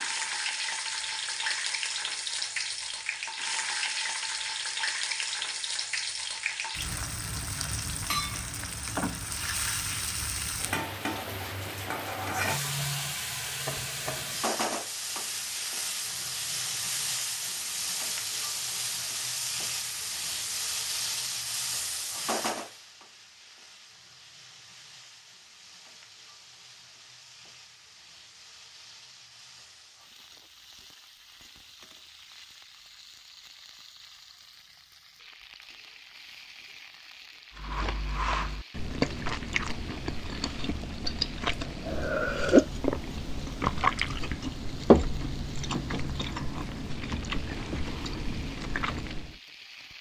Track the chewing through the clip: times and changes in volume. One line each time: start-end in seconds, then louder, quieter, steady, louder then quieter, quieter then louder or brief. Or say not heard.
37.5-49.4 louder then quieter.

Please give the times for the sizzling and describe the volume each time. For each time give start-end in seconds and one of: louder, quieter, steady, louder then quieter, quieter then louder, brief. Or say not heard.
0.0-49.9 quieter.